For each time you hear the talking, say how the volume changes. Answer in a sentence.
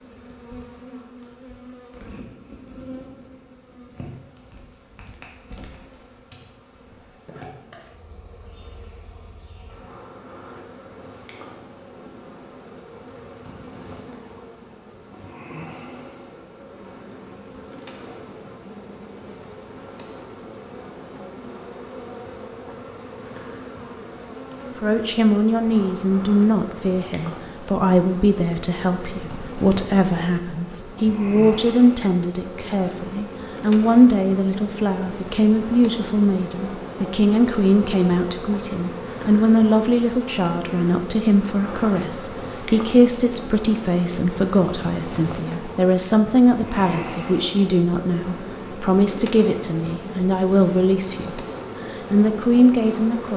The talking can be heard from 24.8 to 53.3 s, at a steady volume.